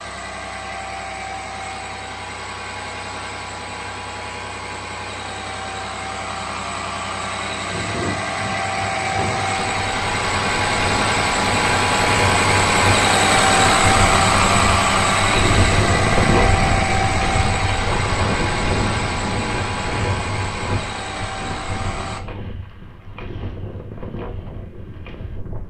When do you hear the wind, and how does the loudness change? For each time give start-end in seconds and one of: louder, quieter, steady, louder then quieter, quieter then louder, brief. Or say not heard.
7.7-25.6 louder then quieter.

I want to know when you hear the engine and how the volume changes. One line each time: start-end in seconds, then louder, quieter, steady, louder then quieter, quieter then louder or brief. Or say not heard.
0.0-22.2 louder then quieter.